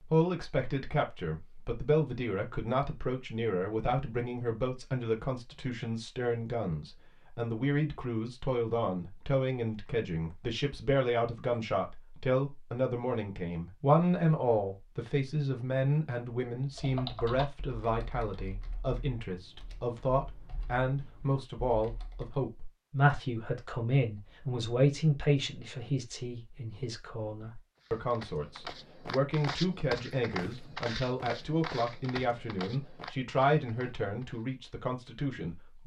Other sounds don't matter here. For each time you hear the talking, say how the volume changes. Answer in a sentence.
You can hear the talking from 0.1 to 35.8 s, at a steady volume.